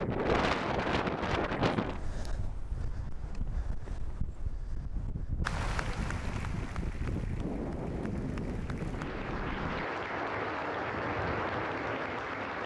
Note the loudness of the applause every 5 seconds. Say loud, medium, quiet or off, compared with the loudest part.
off, medium, loud.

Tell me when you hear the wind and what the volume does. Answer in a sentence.
You can hear the wind from 0.0 to 12.6 s, getting quieter then louder.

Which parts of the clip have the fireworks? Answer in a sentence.
You can't hear the fireworks here.